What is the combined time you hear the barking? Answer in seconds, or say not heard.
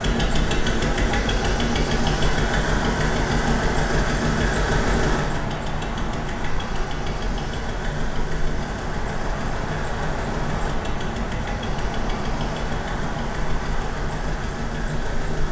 not heard.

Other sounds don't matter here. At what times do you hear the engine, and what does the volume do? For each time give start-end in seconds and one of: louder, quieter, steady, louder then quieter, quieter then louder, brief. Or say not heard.
0.0-15.4 quieter.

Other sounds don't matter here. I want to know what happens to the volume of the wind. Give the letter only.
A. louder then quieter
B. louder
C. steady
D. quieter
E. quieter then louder
C.